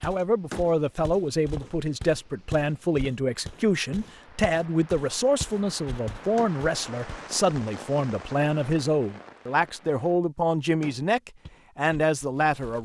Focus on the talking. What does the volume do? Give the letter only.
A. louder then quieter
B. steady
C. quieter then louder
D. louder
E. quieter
B.